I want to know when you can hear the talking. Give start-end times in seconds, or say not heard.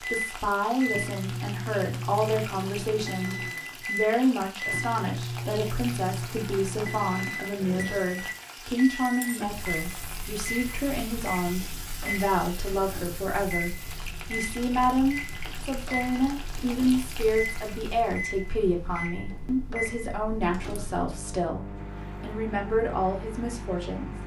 0.0-24.1.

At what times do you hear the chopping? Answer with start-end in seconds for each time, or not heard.
not heard.